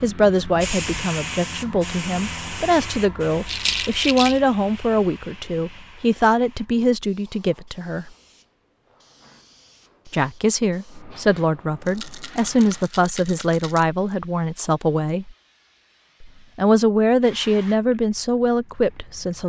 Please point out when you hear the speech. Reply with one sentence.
You can hear the speech from 0.0 to 8.1 s, from 10.1 to 15.3 s and from 16.2 to 19.4 s.